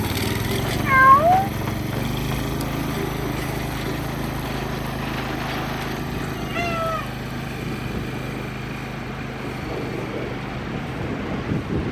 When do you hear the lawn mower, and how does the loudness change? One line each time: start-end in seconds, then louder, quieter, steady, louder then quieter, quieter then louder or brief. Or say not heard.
0.0-11.8 quieter.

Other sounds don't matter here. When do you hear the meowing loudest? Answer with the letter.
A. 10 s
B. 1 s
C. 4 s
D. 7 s
B.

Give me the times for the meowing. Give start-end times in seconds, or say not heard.
0.8-1.4, 6.2-7.1.